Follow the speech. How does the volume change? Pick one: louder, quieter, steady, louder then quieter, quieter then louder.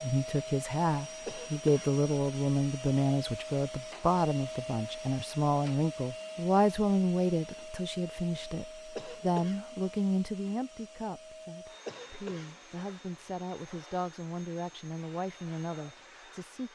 quieter.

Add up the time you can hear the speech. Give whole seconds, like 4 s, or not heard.
17 s.